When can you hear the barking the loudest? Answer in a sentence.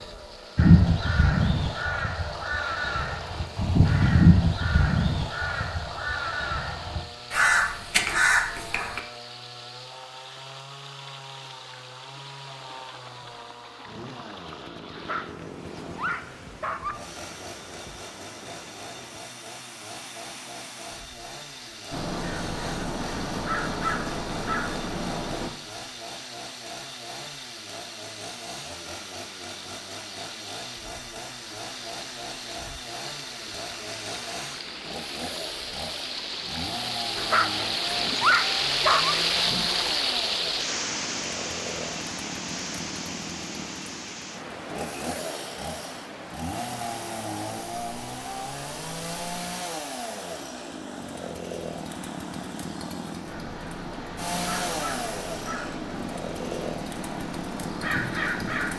The loudest moment of the barking is at 38 seconds.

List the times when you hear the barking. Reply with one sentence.
You can hear the barking from 14.9 to 16.9 s and from 37.1 to 39.1 s.